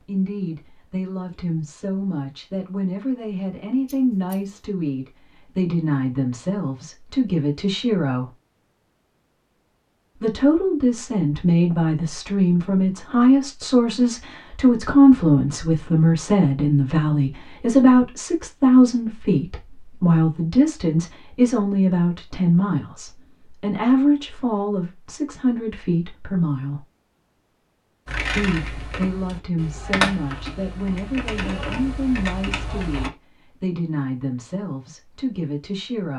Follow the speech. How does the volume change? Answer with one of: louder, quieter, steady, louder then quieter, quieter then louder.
louder then quieter.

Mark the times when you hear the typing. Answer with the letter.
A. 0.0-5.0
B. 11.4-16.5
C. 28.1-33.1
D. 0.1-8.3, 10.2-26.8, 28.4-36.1
C.